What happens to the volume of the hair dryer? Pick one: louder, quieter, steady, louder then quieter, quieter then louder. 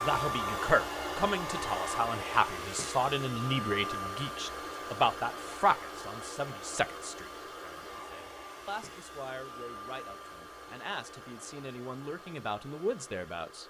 quieter.